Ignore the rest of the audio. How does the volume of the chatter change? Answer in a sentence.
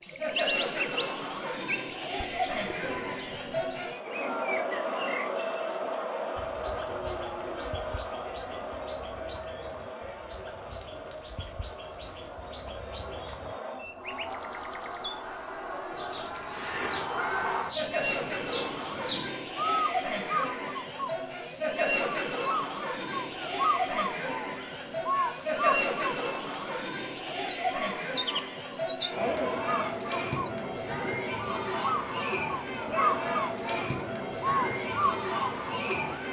The volume of the chatter goes down, then up.